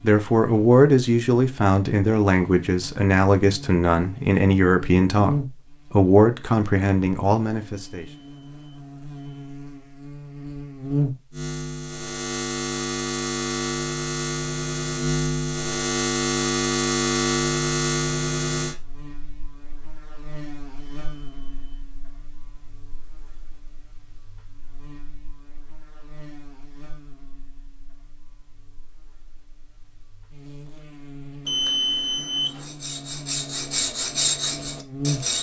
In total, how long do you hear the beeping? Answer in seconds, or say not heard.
4 s.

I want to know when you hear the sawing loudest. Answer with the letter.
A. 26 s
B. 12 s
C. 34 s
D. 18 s
C.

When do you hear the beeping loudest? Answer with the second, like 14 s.
32 s.